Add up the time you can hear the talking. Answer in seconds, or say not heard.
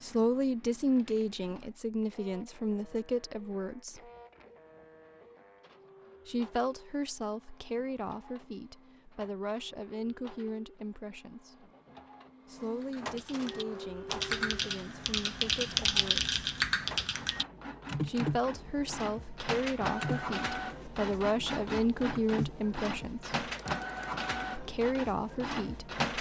20 s.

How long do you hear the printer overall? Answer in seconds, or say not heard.
26 s.